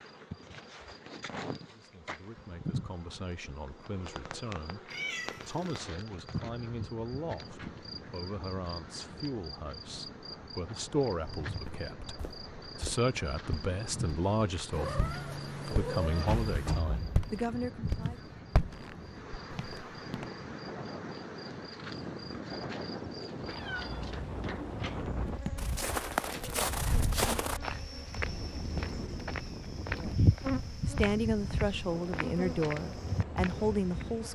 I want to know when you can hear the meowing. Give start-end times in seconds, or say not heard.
4.9-5.8, 14.7-16.8, 23.4-25.1.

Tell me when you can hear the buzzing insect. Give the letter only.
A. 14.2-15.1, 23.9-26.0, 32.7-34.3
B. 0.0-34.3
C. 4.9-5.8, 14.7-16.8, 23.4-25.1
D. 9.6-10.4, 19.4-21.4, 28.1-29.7
B.